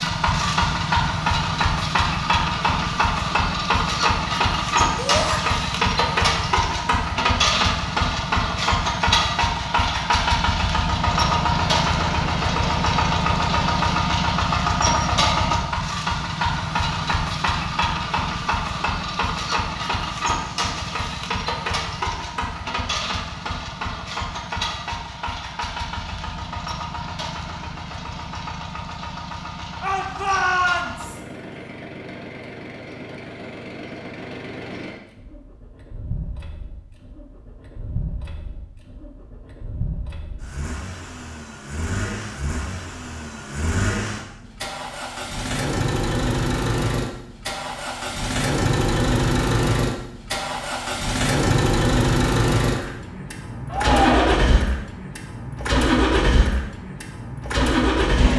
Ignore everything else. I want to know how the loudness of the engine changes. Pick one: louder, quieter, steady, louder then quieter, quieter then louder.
quieter then louder.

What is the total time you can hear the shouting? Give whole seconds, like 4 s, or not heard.
3 s.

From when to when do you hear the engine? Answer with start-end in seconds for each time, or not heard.
0.0-58.3.